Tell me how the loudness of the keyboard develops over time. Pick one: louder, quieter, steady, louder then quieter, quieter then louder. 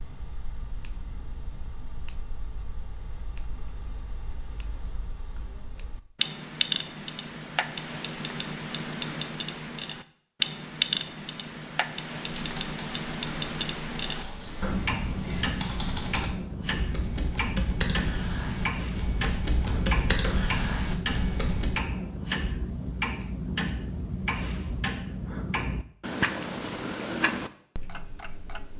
louder.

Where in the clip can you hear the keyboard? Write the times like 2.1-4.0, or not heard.
12.2-21.8.